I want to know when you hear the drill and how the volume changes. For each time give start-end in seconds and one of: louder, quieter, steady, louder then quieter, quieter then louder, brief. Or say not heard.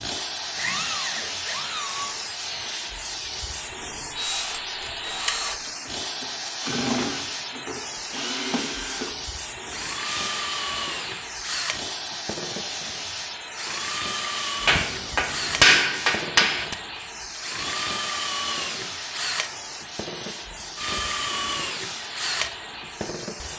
0.4-23.5 steady.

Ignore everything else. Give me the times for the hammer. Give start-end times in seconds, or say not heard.
14.7-16.8.